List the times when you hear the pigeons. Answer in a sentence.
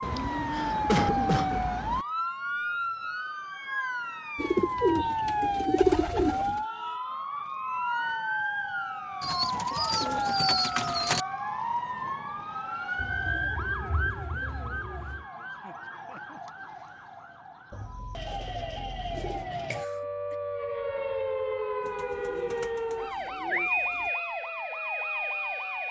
The pigeons can be heard from 0.0 to 2.0 s, from 4.3 to 6.6 s, from 9.2 to 11.2 s, from 12.9 to 15.2 s, from 17.7 to 19.6 s and from 21.8 to 24.1 s.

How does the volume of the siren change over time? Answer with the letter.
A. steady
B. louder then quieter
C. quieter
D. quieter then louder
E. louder
D.